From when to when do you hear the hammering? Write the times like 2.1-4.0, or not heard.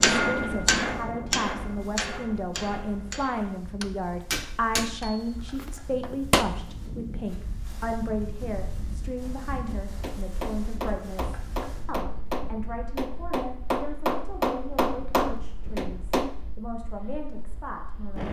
0.0-6.5, 9.7-16.4.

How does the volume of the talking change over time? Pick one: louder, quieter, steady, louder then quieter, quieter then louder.
quieter.